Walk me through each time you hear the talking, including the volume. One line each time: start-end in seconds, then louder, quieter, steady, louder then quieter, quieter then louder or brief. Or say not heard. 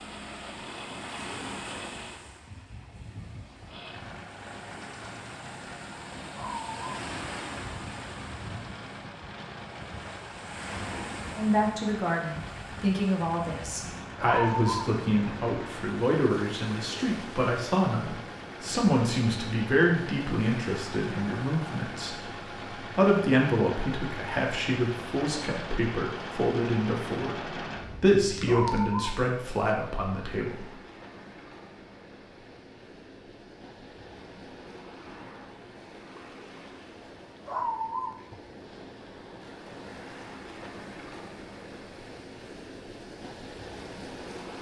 11.3-30.7 steady.